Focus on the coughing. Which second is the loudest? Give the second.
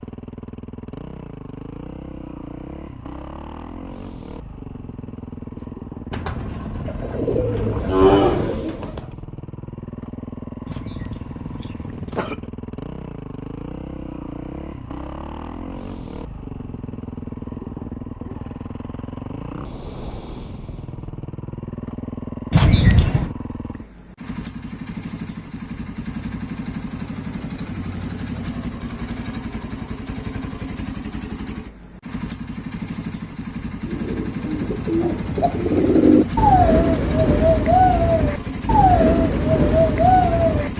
23 s.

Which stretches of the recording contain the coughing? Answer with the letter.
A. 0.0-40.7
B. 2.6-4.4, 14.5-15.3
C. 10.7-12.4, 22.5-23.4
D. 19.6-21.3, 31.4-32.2
C.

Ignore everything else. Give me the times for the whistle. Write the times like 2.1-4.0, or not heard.
not heard.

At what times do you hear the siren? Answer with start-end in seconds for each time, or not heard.
not heard.